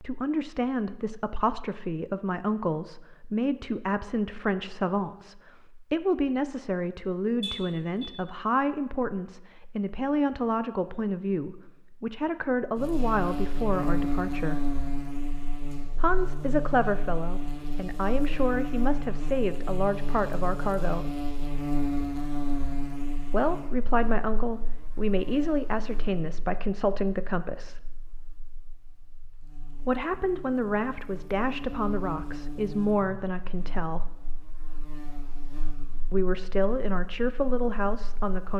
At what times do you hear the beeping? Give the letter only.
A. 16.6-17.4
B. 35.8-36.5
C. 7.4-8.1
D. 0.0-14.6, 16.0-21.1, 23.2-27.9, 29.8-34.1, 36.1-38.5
C.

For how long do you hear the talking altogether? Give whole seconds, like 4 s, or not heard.
31 s.